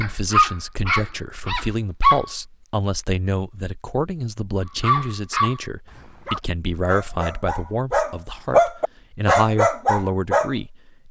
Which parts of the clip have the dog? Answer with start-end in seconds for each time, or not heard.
0.0-2.2, 4.8-10.5.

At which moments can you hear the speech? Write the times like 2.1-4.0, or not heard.
0.0-11.0.